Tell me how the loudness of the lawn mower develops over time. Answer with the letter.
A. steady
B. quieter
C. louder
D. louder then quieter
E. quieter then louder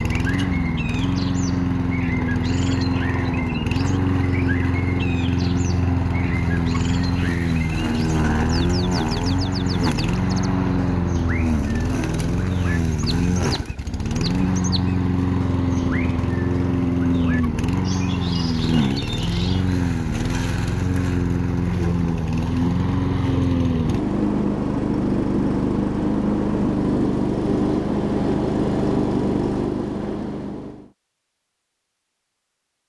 A.